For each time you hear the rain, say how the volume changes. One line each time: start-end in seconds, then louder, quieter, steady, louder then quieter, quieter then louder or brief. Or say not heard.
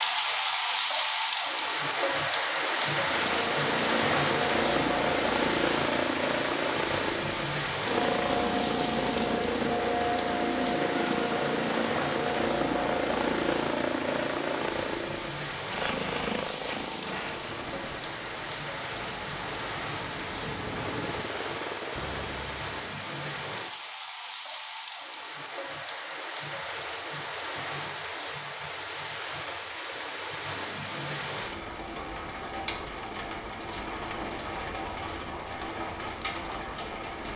0.0-37.3 quieter.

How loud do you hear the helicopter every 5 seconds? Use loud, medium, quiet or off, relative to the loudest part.
loud, loud, loud, medium, medium, off, off, off.